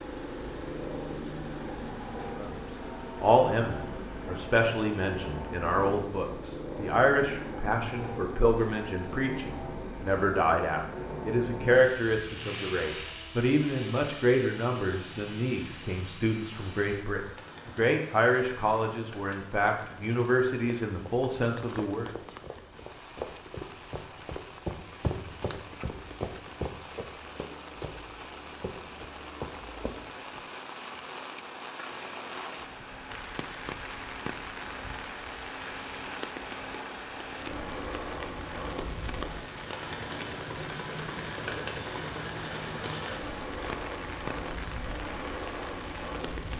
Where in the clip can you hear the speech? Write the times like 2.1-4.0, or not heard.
2.4-22.1.